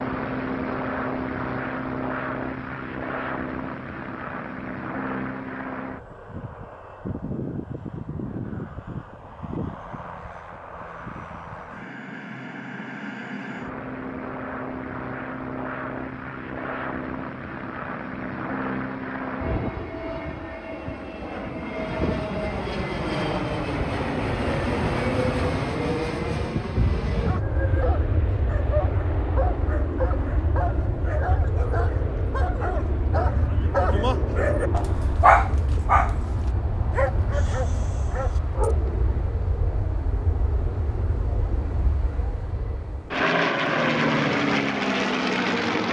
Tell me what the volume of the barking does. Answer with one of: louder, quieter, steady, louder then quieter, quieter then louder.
louder then quieter.